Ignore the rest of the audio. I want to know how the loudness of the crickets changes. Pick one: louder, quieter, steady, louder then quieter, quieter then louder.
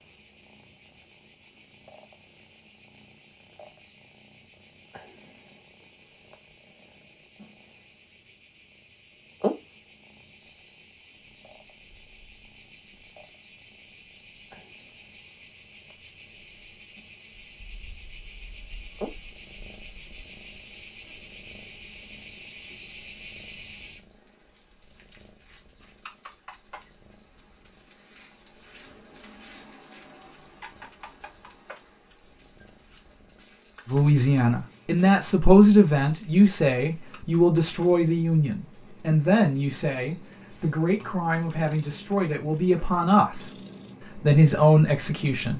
louder then quieter.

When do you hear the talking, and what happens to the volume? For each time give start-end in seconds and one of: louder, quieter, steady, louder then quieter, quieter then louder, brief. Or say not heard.
33.9-43.5 quieter
44.1-45.5 brief.